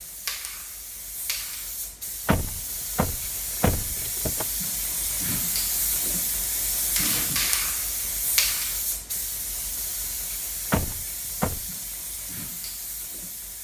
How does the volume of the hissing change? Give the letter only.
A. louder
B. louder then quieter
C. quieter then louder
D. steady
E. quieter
B.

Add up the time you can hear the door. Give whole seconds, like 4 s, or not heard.
3 s.